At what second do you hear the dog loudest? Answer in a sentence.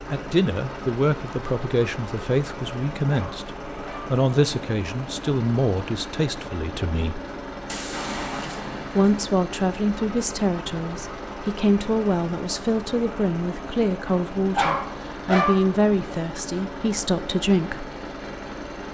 The volume of the dog peaks at 15 seconds.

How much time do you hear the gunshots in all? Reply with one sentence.
The gunshots can be heard for 2 seconds in total.